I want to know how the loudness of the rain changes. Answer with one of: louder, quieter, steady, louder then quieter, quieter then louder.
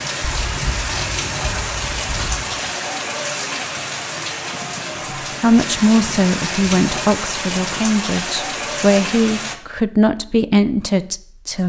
steady.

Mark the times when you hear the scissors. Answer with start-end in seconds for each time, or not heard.
0.2-2.5.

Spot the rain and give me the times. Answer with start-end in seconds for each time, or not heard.
0.0-9.6.